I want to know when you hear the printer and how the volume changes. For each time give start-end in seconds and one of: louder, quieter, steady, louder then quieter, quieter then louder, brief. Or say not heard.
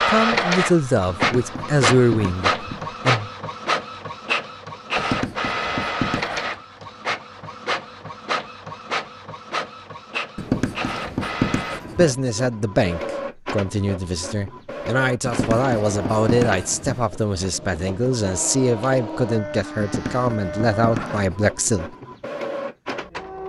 0.0-23.4 quieter.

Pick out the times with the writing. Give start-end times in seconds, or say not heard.
1.1-2.9, 5.0-6.5, 10.3-12.2, 15.2-17.1, 19.8-21.4.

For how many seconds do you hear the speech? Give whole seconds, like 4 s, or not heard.
13 s.